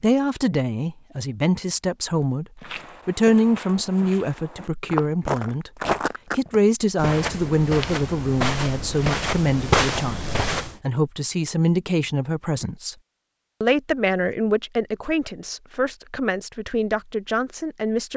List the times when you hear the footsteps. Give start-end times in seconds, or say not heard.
2.6-10.8.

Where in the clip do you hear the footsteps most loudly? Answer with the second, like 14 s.
10 s.